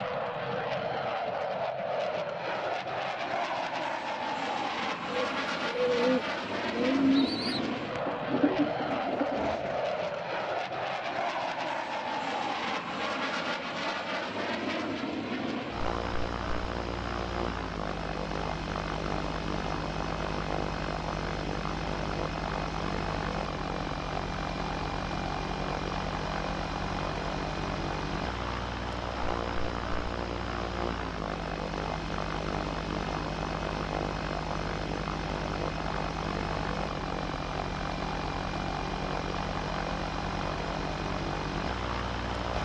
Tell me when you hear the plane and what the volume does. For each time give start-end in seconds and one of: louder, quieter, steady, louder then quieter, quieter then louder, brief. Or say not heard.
0.0-42.6 steady.